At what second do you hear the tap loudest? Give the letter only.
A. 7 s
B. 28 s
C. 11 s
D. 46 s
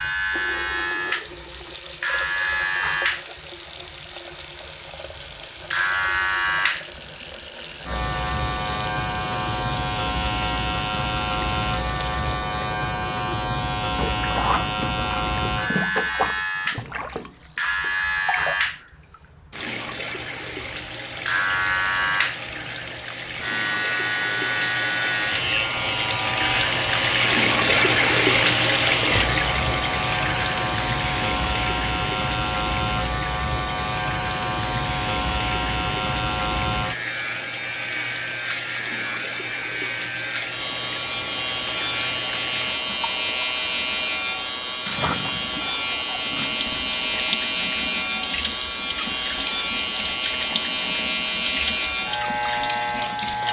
B.